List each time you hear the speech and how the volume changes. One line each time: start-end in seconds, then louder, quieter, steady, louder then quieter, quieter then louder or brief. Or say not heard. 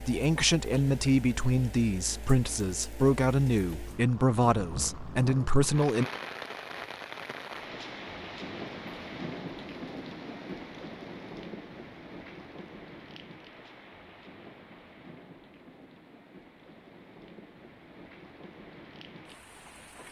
0.0-6.0 steady.